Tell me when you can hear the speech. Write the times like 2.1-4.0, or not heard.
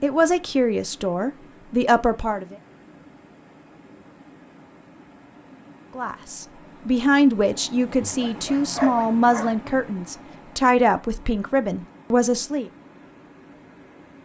0.0-2.5, 6.0-12.7.